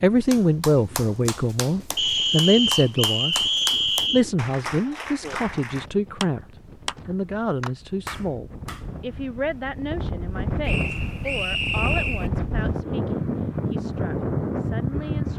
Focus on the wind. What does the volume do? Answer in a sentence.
The volume of the wind goes up.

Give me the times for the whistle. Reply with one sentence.
The whistle can be heard from 1.9 to 4.2 s and from 10.7 to 12.3 s.